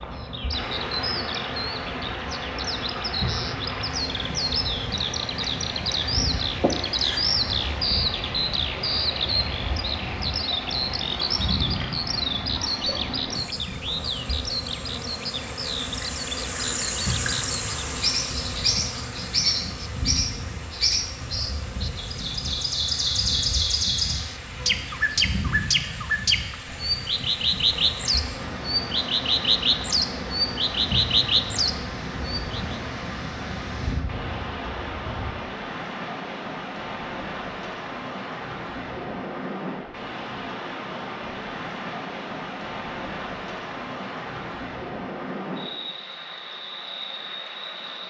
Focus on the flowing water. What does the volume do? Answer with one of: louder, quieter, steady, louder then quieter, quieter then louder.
quieter then louder.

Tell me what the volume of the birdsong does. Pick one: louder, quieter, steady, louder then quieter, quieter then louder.
louder.